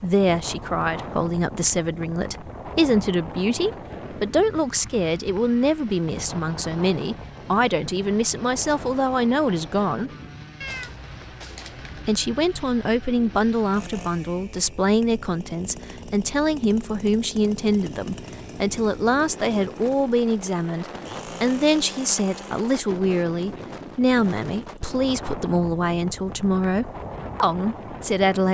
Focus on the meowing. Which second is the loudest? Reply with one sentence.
The loudest moment of the meowing is at 11 seconds.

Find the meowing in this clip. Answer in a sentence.
You can hear the meowing from 10.6 to 12.1 s.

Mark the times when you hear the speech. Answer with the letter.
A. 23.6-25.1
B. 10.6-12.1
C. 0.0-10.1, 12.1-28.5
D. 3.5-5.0
C.